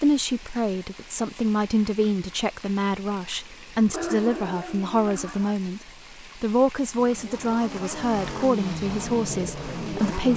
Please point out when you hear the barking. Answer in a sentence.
You can hear the barking from 3.9 to 5.5 s.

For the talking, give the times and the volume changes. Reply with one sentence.
You can hear the talking from 0.0 to 10.3 s, at a steady volume.